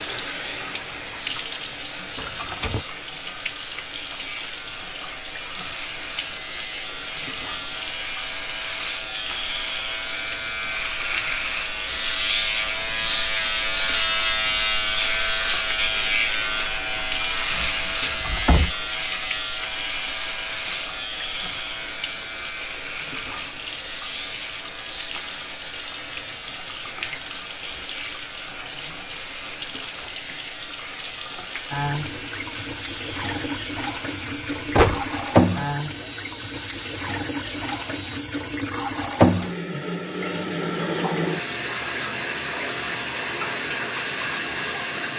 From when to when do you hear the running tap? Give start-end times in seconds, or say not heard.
0.0-45.1.